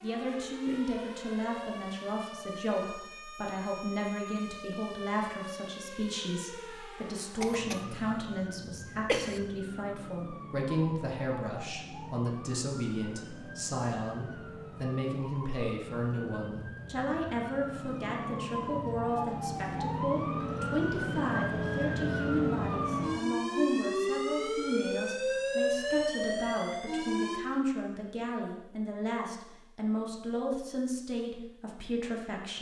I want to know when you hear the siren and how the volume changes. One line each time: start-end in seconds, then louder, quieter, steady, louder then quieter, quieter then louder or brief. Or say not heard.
0.0-27.4 louder.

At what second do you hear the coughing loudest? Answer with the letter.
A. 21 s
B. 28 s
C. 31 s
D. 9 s
D.